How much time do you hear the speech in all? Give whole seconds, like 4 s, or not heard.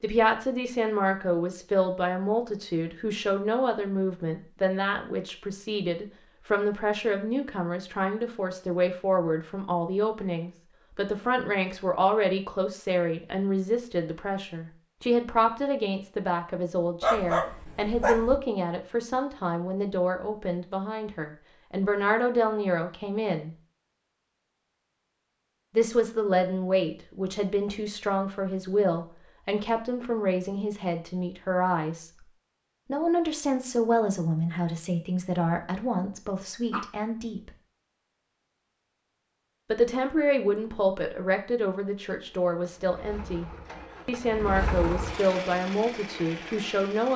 42 s.